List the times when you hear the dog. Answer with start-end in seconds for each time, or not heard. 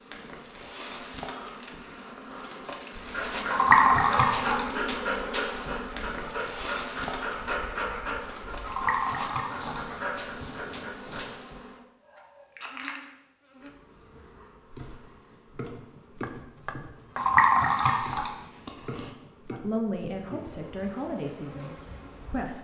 2.9-11.3.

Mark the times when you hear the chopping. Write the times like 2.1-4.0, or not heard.
16.2-17.4.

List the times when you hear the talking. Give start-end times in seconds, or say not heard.
19.5-22.5.